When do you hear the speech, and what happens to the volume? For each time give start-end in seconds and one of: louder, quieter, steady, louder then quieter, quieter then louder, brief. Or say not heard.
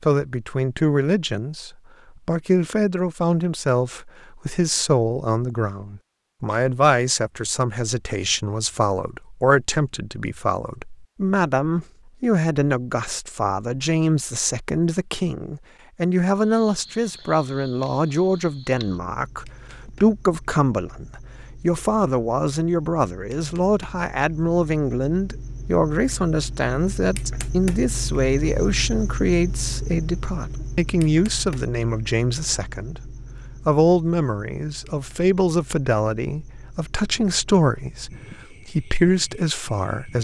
0.0-40.1 steady.